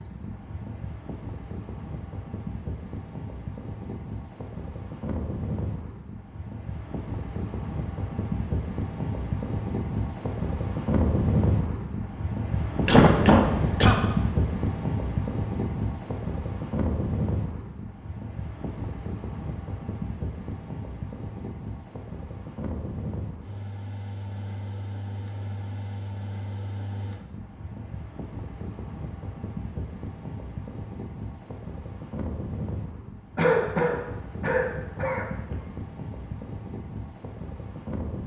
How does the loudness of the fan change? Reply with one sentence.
The loudness of the fan goes up, then down.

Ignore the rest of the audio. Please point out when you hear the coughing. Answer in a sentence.
You can hear the coughing from 12.8 to 13.9 s and from 33.4 to 35.5 s.